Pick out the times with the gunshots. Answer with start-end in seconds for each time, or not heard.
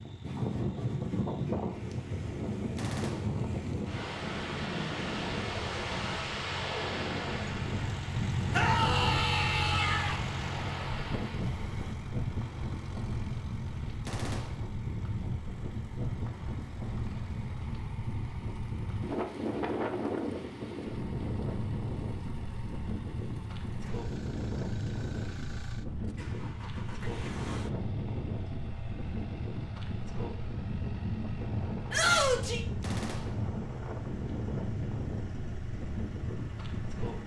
2.8-3.5, 14.1-14.8, 32.8-33.5.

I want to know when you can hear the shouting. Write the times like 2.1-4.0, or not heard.
8.5-10.2, 31.9-32.6.